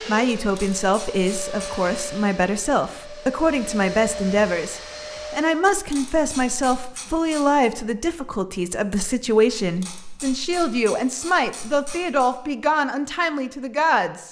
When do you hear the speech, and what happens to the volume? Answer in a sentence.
You can hear the speech from 0.1 to 14.2 s, at a steady volume.